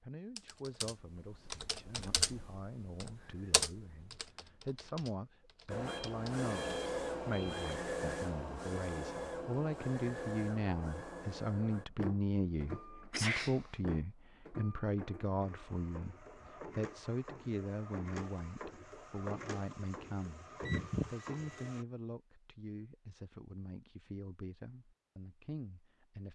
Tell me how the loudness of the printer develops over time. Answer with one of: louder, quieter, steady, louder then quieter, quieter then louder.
quieter then louder.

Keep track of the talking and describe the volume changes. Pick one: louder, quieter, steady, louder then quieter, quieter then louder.
louder then quieter.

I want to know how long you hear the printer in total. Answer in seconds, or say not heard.
16 s.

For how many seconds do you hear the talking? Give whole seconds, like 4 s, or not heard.
26 s.